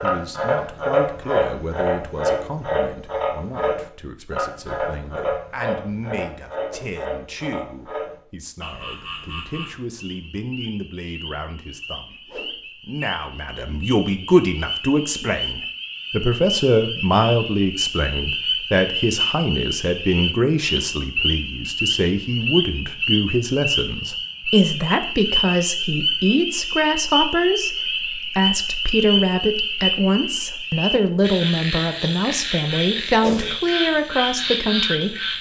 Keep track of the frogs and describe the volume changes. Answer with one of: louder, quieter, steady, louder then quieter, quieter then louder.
quieter then louder.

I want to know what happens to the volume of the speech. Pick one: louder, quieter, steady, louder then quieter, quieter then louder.
louder.